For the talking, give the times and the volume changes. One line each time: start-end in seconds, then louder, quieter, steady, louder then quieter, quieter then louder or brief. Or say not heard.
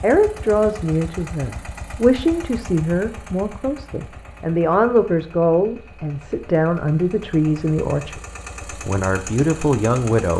0.0-8.2 steady
8.8-10.3 brief.